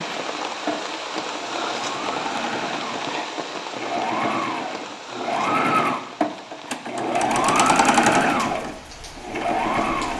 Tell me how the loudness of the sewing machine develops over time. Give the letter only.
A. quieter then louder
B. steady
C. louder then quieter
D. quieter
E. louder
E.